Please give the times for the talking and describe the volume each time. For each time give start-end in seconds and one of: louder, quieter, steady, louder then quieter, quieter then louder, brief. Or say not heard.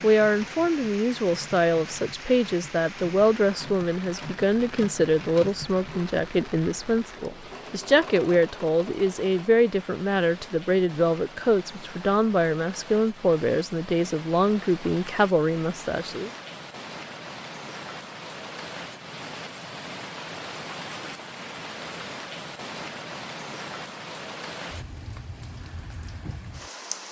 0.0-16.3 steady.